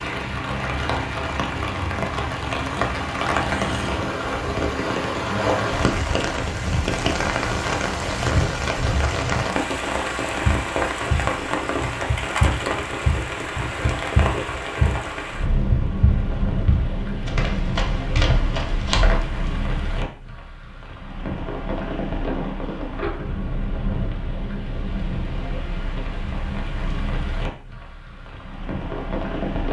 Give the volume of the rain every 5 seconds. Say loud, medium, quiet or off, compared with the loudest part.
loud, loud, loud, medium, medium, medium.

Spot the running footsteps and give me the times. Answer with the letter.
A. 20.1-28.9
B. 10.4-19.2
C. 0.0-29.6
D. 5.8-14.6
B.